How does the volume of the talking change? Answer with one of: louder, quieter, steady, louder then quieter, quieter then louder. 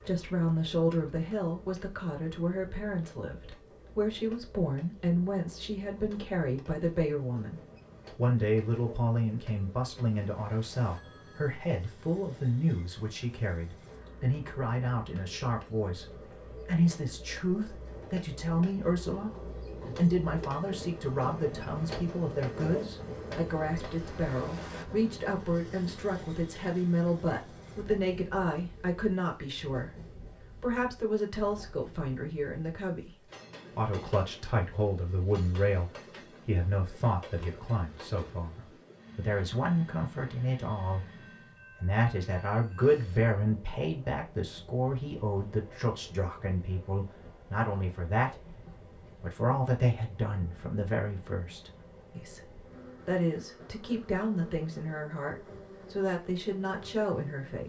steady.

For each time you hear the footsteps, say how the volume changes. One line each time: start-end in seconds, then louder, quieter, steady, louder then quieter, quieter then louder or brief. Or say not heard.
not heard.